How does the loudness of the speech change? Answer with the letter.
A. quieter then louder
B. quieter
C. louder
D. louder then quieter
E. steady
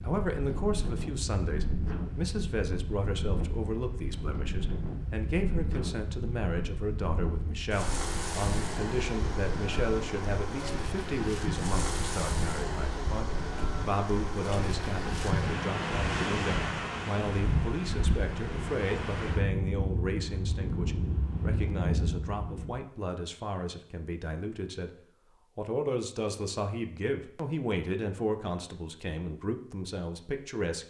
E.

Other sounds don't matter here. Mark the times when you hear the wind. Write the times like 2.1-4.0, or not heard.
0.0-22.8.